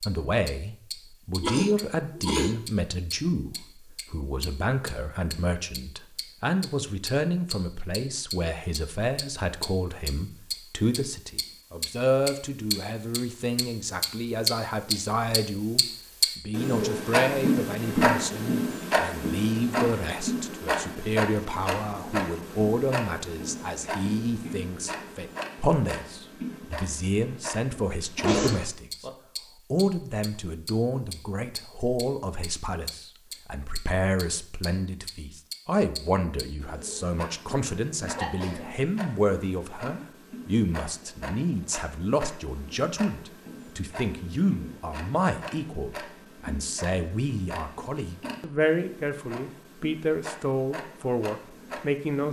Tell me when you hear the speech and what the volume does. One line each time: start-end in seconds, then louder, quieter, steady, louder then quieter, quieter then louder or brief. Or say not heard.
0.0-29.1 steady
29.7-52.2 steady.